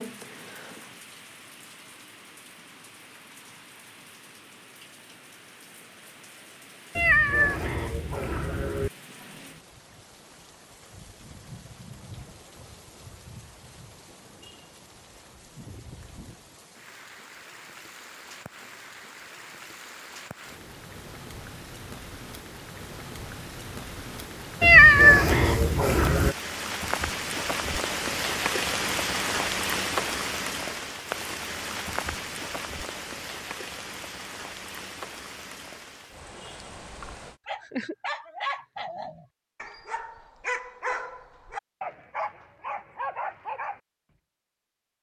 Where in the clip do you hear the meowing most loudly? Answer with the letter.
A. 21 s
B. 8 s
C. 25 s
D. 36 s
C.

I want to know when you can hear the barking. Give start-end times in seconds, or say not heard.
36.9-43.8.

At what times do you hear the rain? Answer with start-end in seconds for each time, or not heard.
0.0-37.4.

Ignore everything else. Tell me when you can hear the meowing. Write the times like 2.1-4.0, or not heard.
7.0-8.9, 24.6-26.4.